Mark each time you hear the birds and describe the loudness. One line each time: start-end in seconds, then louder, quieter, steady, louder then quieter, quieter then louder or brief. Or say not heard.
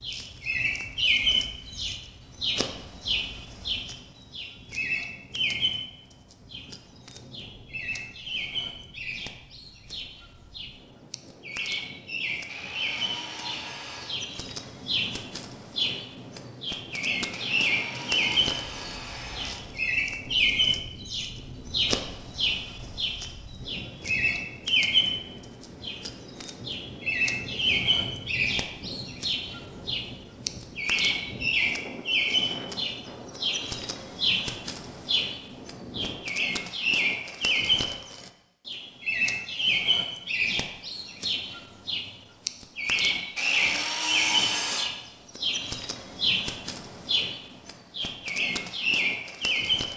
0.0-49.9 steady.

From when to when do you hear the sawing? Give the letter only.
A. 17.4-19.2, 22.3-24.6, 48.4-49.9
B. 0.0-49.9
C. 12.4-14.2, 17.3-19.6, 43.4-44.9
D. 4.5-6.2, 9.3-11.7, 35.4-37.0
C.